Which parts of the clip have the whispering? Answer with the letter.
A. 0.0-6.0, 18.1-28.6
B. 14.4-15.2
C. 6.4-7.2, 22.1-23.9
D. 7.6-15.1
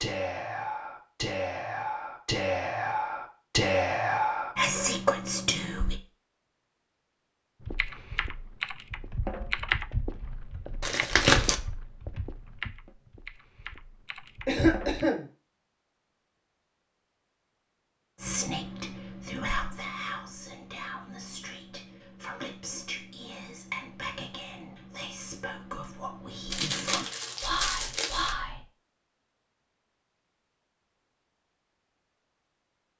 A.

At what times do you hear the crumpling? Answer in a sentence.
You can hear the crumpling from 10.8 to 11.6 s and from 26.5 to 28.4 s.